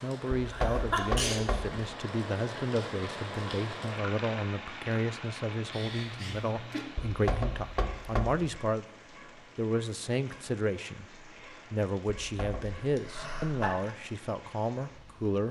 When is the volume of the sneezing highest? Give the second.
1 s.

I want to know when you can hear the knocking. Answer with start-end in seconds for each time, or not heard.
0.4-1.8, 7.0-8.4, 12.3-12.8.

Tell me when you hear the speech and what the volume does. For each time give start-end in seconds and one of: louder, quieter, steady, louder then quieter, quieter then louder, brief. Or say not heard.
0.0-15.4 steady.